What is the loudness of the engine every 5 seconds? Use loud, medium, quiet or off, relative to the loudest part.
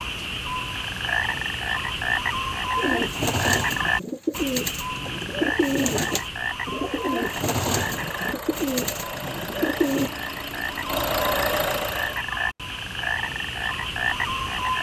off, medium, loud.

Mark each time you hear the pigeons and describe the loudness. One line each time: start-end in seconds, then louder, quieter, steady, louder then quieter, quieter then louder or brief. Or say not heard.
2.8-10.1 steady.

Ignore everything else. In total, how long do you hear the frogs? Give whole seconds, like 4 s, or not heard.
15 s.